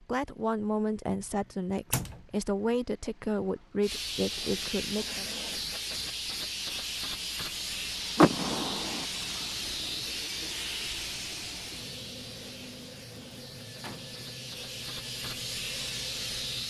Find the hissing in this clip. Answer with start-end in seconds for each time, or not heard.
3.8-16.6.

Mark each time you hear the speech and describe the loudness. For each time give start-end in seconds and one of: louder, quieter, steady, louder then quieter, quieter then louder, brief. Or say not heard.
0.0-5.2 steady.